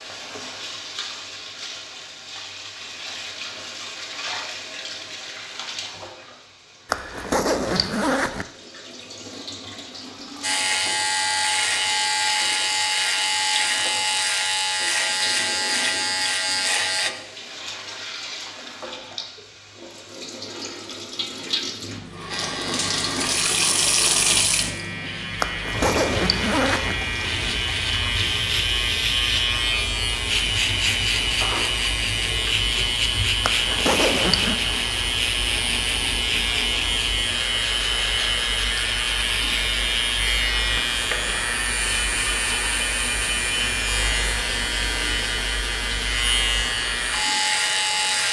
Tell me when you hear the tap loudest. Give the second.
24 s.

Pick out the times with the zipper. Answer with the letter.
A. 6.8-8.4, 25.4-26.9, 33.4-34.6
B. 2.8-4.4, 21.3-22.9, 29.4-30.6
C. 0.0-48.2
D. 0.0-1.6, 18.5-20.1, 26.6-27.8
A.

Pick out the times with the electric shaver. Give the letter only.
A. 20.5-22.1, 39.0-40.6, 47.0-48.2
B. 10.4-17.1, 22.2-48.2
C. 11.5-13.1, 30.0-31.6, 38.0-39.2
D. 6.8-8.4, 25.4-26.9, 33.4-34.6
B.